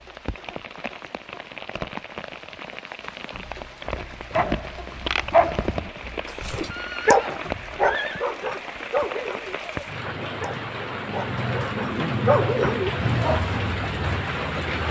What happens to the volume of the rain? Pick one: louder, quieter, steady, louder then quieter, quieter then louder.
louder.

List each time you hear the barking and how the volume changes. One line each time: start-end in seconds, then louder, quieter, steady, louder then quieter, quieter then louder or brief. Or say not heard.
4.3-13.7 quieter then louder.